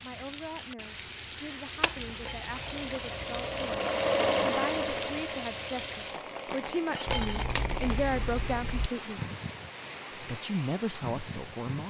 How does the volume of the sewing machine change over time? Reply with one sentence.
The loudness of the sewing machine goes up, then down.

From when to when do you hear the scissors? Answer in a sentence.
You can hear the scissors from 1.8 to 3.9 s and from 7.0 to 8.9 s.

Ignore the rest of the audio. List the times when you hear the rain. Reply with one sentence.
You can hear the rain from 0.0 to 11.8 s.